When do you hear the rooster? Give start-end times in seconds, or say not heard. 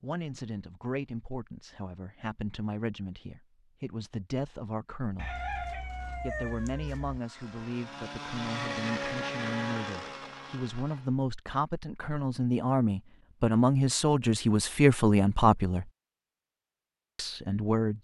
5.2-7.2.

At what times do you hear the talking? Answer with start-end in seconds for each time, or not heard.
0.0-5.3, 6.2-15.9, 17.1-17.9.